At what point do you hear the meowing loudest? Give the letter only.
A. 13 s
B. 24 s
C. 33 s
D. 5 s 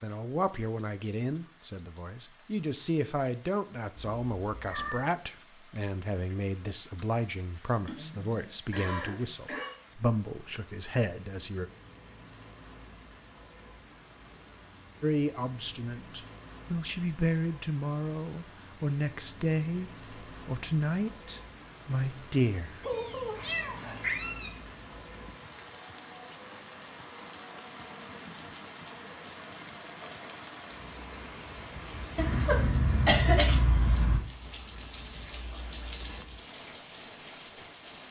B.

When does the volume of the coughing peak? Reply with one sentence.
The volume of the coughing peaks at 33 seconds.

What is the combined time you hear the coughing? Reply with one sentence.
The coughing can be heard for 4 seconds in total.